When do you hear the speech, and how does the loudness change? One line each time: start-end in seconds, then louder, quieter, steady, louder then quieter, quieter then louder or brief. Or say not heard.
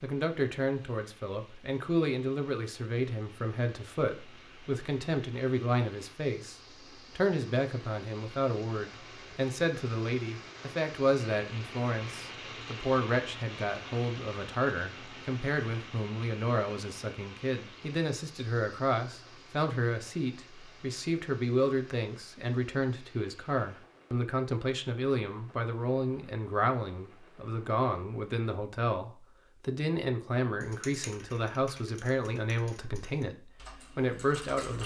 0.0-34.8 steady.